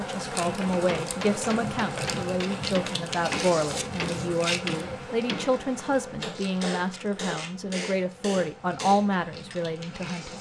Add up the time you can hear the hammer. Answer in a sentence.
You can hear the hammer for 9 seconds altogether.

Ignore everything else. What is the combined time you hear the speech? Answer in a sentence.
The speech can be heard for 10 seconds in total.